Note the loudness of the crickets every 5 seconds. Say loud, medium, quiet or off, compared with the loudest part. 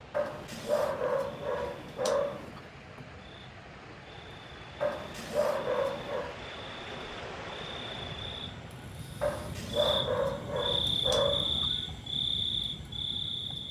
quiet, medium, loud.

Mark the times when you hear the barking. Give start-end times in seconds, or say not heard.
0.1-2.6, 4.8-6.3, 9.2-11.7.